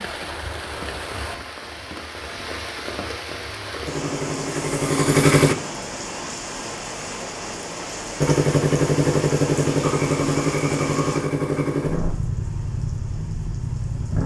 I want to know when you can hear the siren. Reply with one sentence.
You can't hear the siren here.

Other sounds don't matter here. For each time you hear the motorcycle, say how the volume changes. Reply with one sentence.
The motorcycle can be heard briefly from 3.9 to 5.5 s; and from 8.2 to 14.2 s, getting quieter.